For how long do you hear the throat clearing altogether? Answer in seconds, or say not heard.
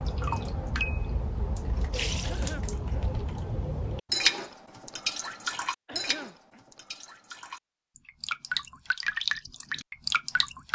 2 s.